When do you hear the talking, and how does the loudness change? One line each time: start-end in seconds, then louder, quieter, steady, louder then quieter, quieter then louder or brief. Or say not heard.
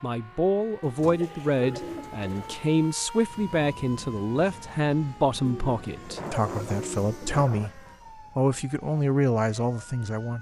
0.0-10.3 steady.